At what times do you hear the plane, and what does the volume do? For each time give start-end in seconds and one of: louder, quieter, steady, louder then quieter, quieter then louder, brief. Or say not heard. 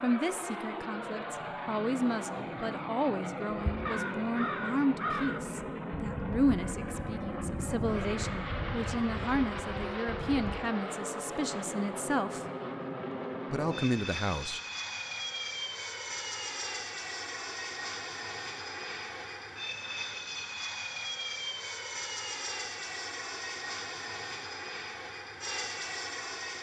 0.0-26.5 steady.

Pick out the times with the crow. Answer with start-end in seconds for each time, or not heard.
3.7-10.6.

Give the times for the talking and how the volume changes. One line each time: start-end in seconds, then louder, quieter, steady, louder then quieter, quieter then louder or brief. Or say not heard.
0.0-12.4 steady
13.4-14.6 brief.